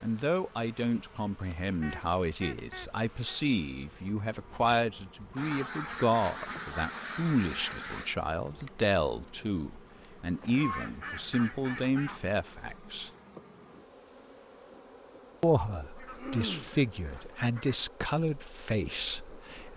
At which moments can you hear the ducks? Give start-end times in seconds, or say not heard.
1.8-3.4, 5.3-8.2, 10.4-12.3, 15.9-17.8.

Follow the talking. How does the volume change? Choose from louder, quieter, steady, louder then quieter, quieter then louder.
steady.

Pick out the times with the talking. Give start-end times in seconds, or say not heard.
0.0-13.1, 15.4-19.7.